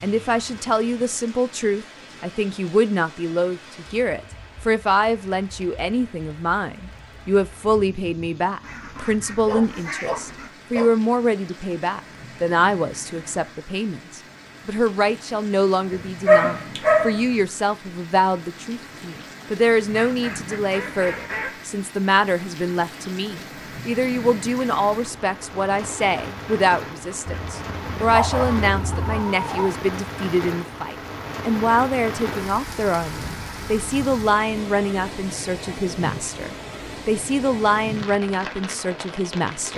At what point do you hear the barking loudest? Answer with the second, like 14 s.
16 s.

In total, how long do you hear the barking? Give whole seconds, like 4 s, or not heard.
5 s.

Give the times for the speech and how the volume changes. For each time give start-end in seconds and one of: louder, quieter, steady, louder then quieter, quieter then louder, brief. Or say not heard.
0.0-39.7 steady.